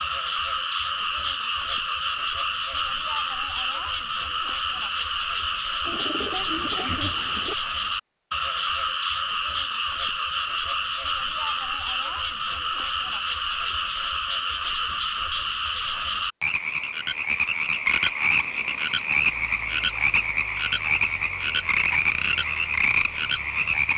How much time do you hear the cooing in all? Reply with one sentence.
You can hear the cooing for 2 seconds altogether.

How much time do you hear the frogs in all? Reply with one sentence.
The frogs can be heard for 24 seconds in total.